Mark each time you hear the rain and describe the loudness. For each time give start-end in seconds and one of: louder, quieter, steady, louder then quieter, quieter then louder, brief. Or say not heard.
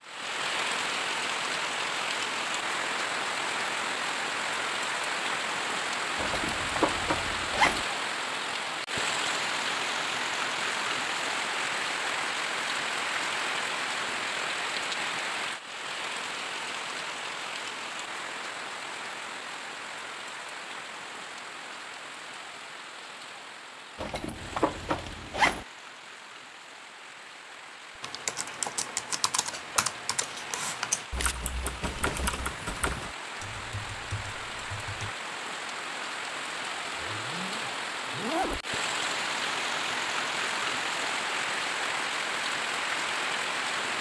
0.0-43.9 quieter then louder.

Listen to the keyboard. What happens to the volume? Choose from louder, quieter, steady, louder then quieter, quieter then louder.
quieter.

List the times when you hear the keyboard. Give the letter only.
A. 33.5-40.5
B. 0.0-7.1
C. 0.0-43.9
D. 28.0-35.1
D.